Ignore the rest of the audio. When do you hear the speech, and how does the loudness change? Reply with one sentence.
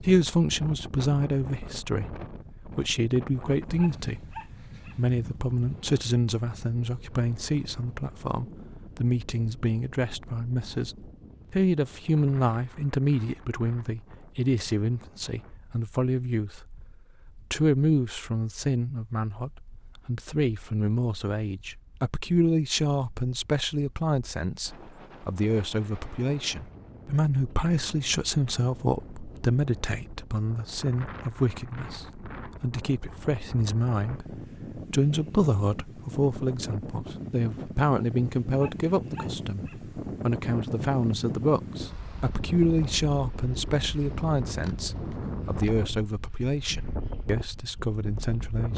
You can hear the speech from 0.0 to 48.7 s, at a steady volume.